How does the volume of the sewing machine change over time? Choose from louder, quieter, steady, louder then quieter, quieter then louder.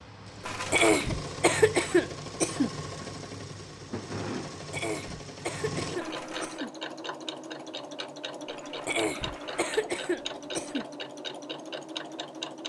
steady.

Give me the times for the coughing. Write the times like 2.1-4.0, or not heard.
0.7-2.7, 4.7-6.7, 8.8-10.8.